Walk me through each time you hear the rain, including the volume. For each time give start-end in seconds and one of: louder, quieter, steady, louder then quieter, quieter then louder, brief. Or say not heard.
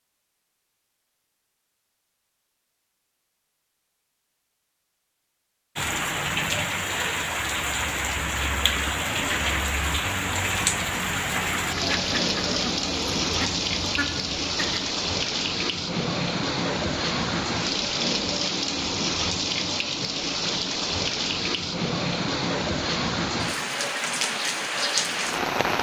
5.8-25.7 steady.